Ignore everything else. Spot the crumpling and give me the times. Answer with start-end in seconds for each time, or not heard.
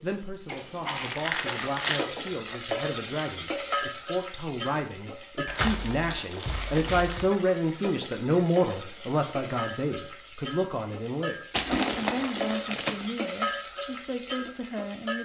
0.5-2.0, 5.5-7.3, 11.5-13.1.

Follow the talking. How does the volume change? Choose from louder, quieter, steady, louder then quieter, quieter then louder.
louder then quieter.